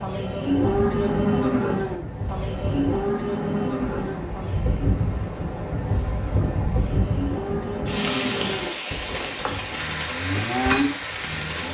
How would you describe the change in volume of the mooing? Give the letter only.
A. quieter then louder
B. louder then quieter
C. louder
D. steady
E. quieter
A.